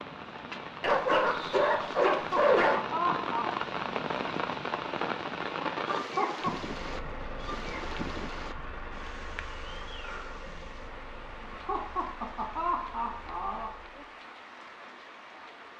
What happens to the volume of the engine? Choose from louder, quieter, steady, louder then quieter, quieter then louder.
quieter.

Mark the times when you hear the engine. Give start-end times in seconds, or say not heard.
6.7-14.2.